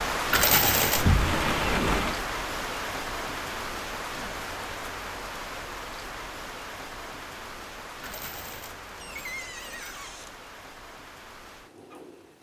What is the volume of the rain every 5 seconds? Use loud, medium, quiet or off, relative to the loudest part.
loud, medium, quiet.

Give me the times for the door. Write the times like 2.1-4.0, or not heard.
0.9-2.2, 9.0-10.3.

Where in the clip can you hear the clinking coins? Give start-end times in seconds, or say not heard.
0.3-1.1, 8.0-9.9.